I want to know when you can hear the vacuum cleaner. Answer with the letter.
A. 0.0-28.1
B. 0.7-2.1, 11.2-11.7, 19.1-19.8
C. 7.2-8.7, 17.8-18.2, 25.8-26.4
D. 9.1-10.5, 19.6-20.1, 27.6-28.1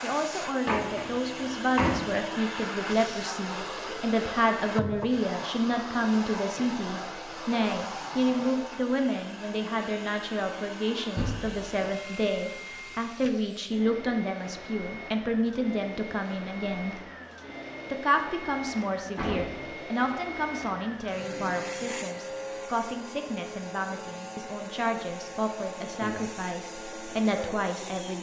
A.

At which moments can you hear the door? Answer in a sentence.
You can hear the door from 0.7 to 2.1 s, from 11.2 to 11.7 s and from 19.1 to 19.8 s.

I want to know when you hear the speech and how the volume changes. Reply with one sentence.
The speech can be heard from 0.0 to 17.0 s, at a steady volume; and from 17.9 to 28.1 s, at a steady volume.